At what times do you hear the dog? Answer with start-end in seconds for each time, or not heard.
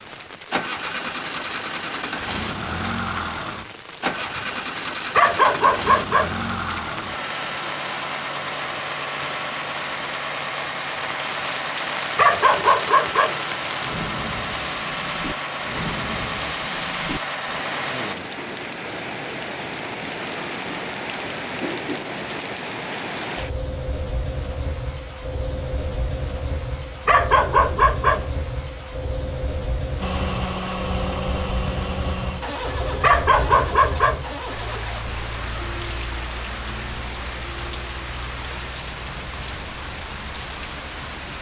5.2-6.3, 12.2-13.4, 27.1-28.2, 33.0-34.2.